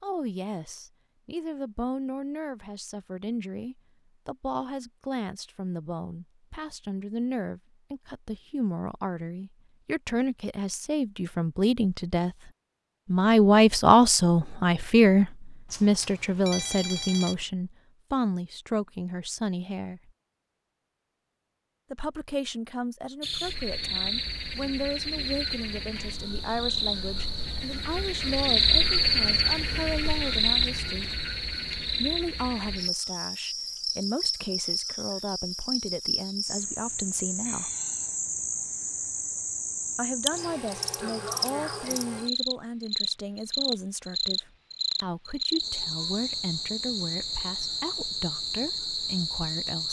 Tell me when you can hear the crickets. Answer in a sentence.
The crickets can be heard from 23.2 to 49.8 s.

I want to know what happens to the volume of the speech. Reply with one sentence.
The volume of the speech goes up, then down.